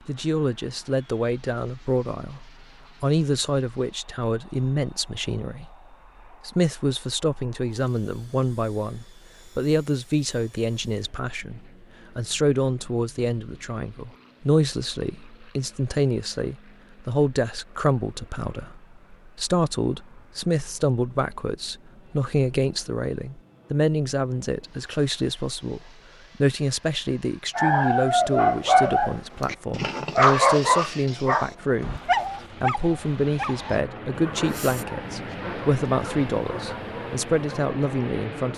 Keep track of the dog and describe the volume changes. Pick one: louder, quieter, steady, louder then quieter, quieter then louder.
quieter.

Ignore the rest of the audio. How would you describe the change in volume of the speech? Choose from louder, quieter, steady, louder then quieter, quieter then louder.
steady.